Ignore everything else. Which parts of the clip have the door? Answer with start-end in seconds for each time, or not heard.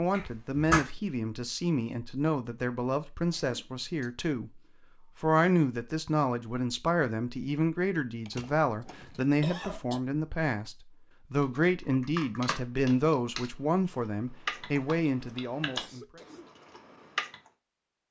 0.1-0.8.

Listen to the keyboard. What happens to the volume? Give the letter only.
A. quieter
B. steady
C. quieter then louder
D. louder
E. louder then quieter
A.